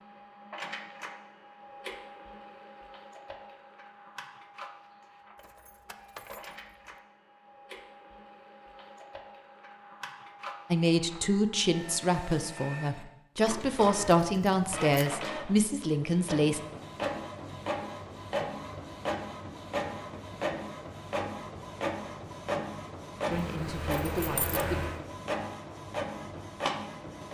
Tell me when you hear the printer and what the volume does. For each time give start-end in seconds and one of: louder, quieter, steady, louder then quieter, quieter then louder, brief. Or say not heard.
0.0-27.2 louder.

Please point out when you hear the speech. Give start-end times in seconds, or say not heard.
10.7-16.6, 23.2-24.9.